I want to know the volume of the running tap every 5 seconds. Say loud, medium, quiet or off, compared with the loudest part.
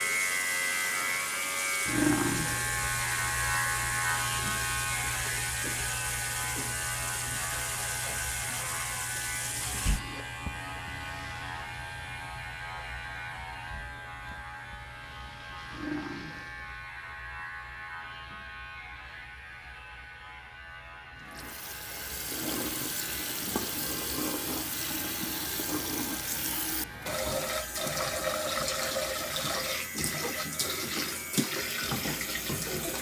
medium, medium, quiet, quiet, loud, loud, loud.